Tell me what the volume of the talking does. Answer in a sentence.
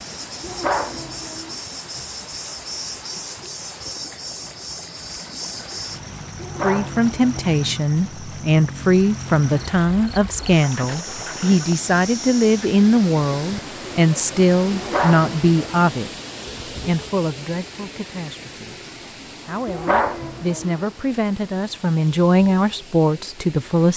The volume of the talking goes down, then up.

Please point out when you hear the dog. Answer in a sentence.
You can hear the dog from 0.4 to 1.6 s, from 6.3 to 7.4 s, from 14.7 to 15.8 s and from 19.6 to 20.8 s.